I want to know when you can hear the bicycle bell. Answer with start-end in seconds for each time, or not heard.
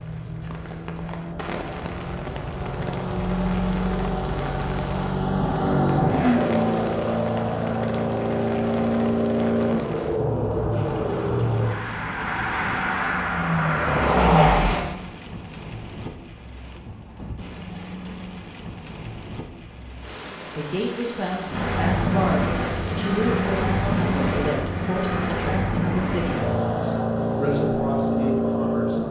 not heard.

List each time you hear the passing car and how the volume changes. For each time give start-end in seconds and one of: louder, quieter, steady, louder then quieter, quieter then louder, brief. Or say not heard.
0.0-14.8 louder
21.4-29.0 steady.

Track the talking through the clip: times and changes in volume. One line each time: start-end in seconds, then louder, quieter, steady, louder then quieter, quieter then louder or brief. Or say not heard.
20.6-29.0 steady.